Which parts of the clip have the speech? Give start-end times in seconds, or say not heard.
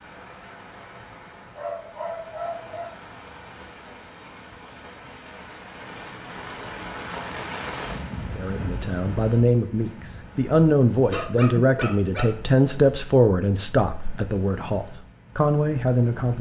8.3-16.3.